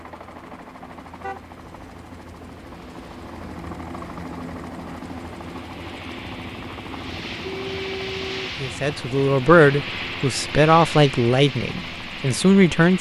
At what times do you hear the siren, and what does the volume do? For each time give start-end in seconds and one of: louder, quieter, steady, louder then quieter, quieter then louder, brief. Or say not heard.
not heard.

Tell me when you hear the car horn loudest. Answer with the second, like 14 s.
8 s.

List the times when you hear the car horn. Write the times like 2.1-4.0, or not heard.
1.2-2.0, 6.9-8.5.